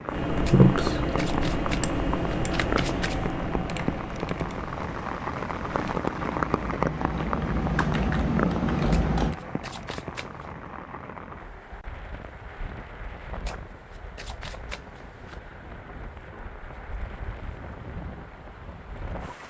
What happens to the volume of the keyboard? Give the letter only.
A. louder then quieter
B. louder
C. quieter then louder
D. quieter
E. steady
C.